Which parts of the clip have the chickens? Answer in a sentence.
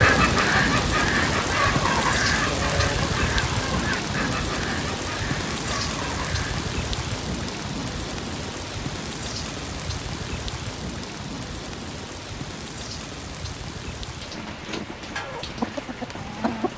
The chickens can be heard from 0.0 to 6.7 s and from 15.2 to 16.7 s.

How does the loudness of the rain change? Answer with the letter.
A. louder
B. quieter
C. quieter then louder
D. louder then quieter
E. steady
B.